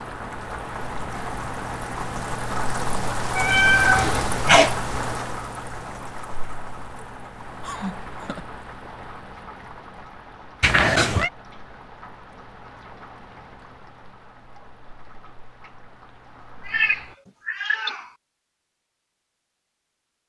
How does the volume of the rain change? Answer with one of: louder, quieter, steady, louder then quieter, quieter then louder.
quieter.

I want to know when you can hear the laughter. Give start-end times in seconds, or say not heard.
7.6-8.4.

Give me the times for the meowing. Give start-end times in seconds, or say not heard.
3.4-4.8, 10.6-11.3, 16.6-18.1.